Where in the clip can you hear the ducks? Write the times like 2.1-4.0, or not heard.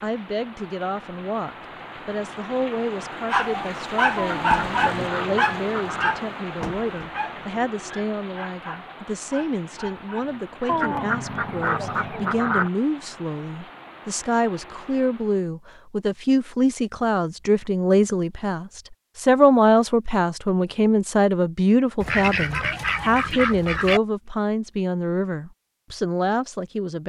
4.2-6.2, 10.7-12.7, 22.0-24.0.